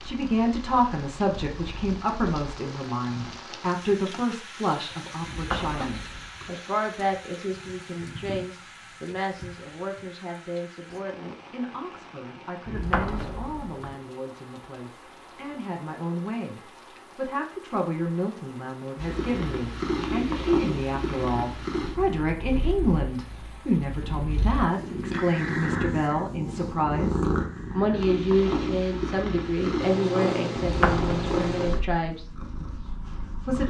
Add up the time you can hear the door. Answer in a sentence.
You can hear the door for 4 seconds altogether.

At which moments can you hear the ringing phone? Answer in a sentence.
The ringing phone can't be heard in this clip.